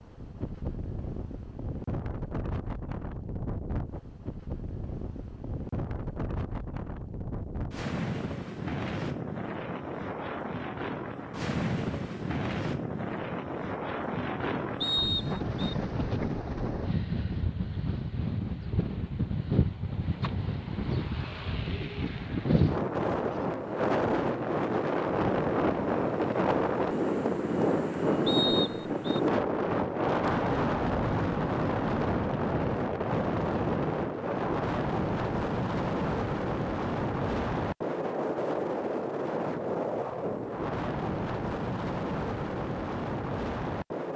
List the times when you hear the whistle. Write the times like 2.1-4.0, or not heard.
14.8-15.8, 28.2-29.0.